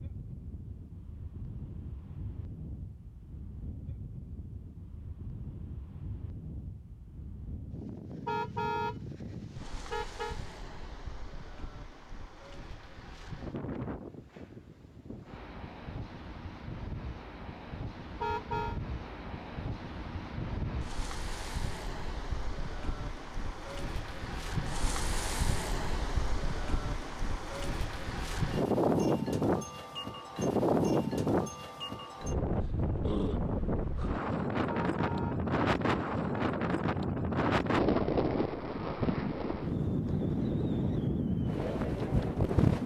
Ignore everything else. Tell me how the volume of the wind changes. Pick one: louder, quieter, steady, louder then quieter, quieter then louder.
louder.